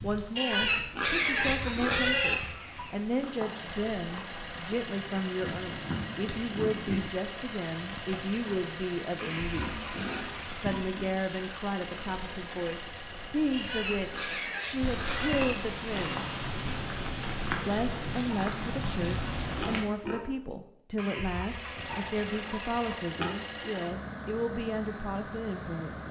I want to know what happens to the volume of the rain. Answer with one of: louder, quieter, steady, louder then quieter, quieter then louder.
louder.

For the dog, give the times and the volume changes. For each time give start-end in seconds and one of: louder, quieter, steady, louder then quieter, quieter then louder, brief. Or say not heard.
not heard.